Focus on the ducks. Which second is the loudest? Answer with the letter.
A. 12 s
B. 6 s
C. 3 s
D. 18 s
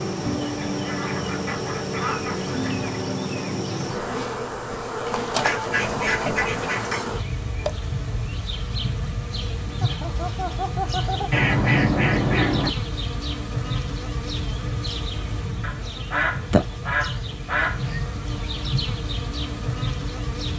A.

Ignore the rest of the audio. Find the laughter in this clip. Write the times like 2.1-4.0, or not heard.
9.8-11.3.